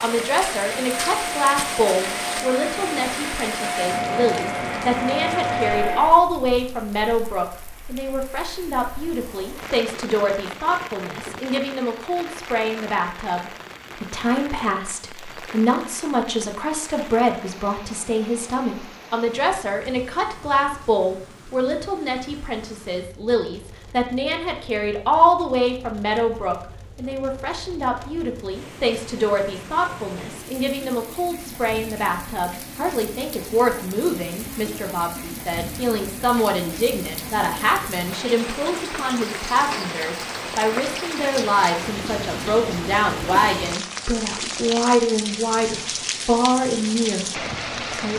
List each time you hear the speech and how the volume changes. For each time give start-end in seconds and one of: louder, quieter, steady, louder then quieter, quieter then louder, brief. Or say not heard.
0.0-48.1 steady.